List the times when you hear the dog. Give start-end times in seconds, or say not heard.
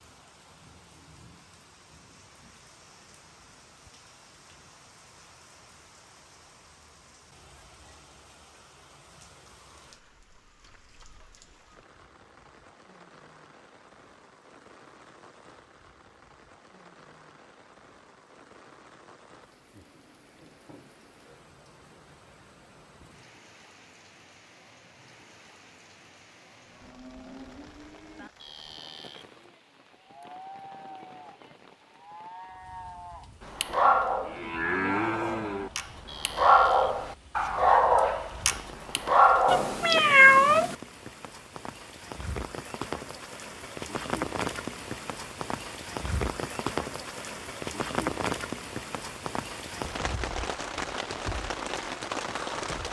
33.5-40.0.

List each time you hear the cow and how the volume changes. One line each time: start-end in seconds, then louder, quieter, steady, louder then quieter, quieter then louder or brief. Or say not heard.
26.6-37.0 louder.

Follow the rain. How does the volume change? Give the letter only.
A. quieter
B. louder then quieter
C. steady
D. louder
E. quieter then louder
D.